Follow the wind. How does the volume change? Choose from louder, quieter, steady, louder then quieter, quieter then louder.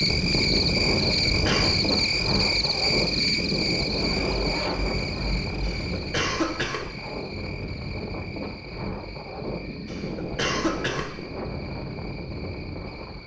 quieter.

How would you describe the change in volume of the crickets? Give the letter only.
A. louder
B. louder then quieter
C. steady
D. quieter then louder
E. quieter
E.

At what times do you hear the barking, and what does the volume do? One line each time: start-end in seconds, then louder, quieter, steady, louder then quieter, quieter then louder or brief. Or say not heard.
not heard.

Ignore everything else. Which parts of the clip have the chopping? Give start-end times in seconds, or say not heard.
not heard.